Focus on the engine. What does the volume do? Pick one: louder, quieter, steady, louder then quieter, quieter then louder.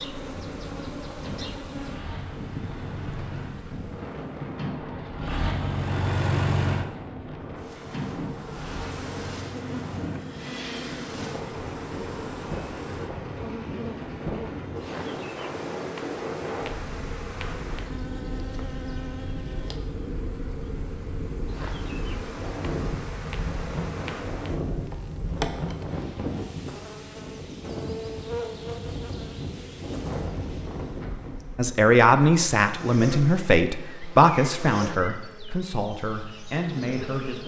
louder then quieter.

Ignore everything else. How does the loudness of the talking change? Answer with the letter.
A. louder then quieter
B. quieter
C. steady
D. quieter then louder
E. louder
B.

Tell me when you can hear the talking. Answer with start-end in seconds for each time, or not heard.
31.6-37.4.